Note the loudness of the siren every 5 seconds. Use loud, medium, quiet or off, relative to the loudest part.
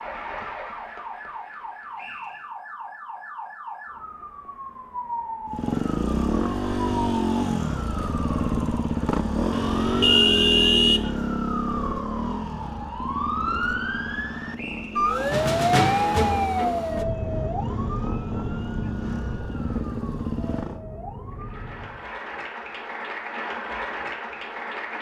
quiet, medium, medium, loud, quiet.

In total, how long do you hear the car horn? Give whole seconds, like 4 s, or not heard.
2 s.